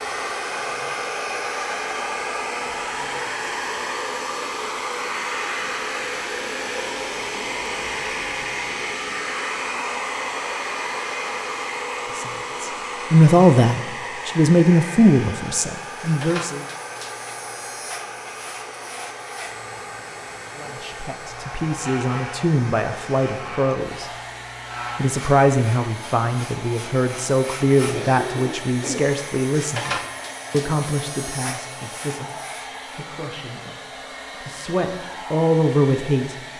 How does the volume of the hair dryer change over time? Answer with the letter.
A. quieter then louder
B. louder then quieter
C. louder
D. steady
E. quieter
E.